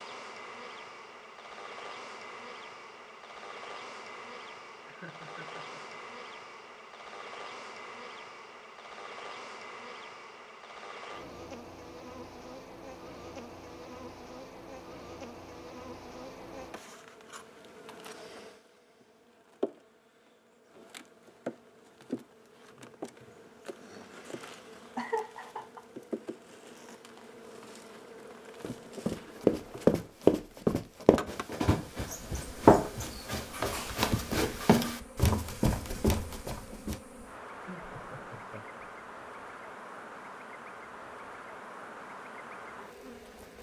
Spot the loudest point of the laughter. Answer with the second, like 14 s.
25 s.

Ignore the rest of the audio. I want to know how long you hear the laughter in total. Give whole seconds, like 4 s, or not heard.
3 s.